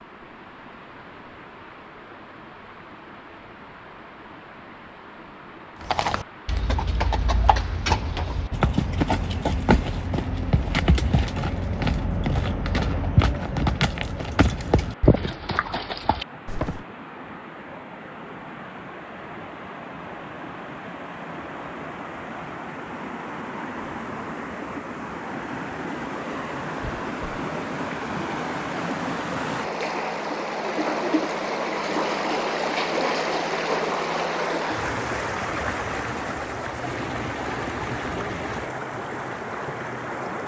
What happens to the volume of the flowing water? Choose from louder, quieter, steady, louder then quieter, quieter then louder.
louder.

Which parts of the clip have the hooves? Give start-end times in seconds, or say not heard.
5.8-16.9.